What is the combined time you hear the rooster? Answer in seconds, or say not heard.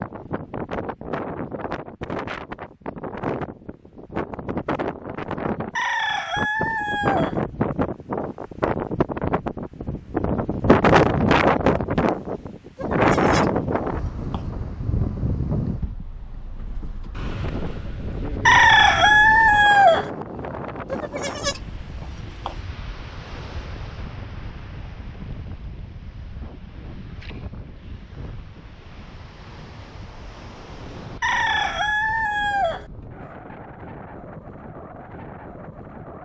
5 s.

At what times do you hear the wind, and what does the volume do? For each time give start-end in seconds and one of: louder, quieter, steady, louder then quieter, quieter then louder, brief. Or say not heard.
0.0-36.2 louder then quieter.